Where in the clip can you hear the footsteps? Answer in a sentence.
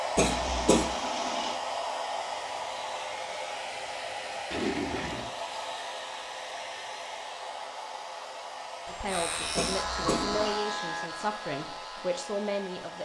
You can't hear the footsteps here.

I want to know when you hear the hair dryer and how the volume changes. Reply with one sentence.
You can hear the hair dryer from 0.0 to 13.0 s, getting quieter.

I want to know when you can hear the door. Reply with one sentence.
The door can't be heard in this clip.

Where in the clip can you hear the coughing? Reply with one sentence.
You can hear the coughing from 0.1 to 0.8 s and from 9.6 to 10.2 s.